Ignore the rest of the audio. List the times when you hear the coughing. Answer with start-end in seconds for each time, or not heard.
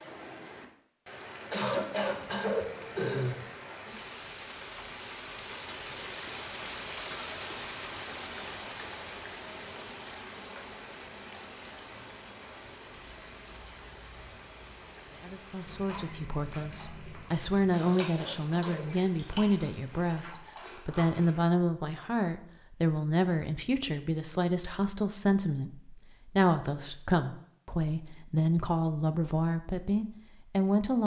1.5-3.5, 17.7-19.0.